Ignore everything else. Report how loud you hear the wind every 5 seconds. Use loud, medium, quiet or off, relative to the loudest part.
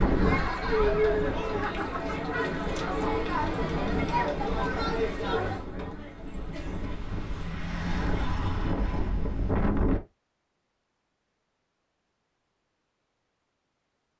loud, loud, off.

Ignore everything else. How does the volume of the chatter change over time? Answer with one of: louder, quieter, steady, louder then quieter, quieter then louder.
quieter.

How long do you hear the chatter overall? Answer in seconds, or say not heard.
8 s.